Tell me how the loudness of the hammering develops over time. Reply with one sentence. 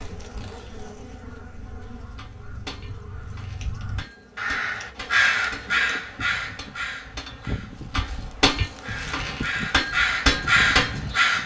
The loudness of the hammering goes up.